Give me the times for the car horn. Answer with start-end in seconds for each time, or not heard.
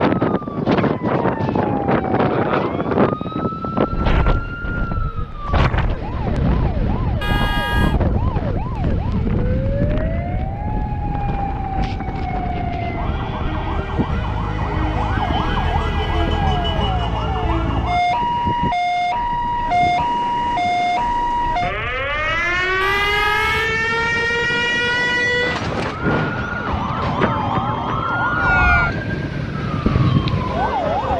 7.2-8.0, 15.1-16.9, 22.8-23.7.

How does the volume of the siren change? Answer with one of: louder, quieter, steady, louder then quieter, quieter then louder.
louder.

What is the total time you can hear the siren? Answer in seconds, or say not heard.
31 s.